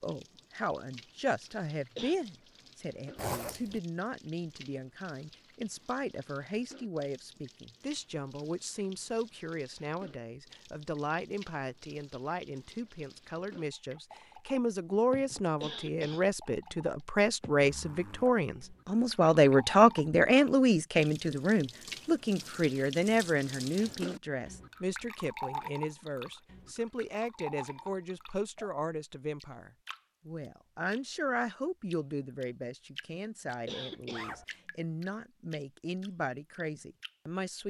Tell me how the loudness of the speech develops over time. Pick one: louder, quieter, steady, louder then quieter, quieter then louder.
louder then quieter.